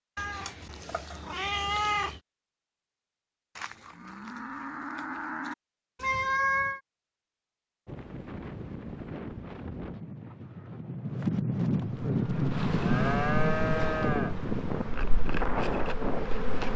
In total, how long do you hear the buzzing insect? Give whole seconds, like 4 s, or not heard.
5 s.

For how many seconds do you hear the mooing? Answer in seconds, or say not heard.
4 s.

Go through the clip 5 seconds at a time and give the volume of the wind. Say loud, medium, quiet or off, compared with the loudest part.
off, medium, loud, loud.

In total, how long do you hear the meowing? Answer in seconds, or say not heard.
4 s.